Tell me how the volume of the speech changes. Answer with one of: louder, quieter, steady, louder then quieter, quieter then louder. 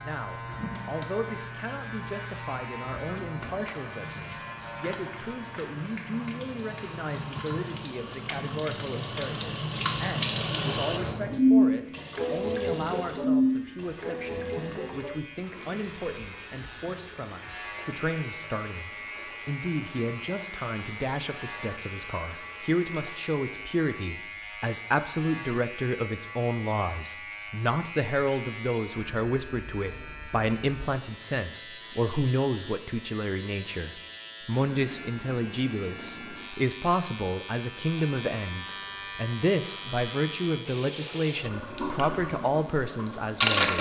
louder.